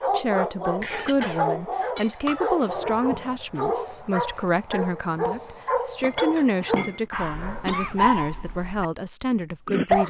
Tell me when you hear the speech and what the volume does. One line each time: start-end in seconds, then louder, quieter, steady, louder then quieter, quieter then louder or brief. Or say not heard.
0.1-10.0 steady.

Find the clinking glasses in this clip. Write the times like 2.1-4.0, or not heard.
1.9-3.3, 6.0-7.0.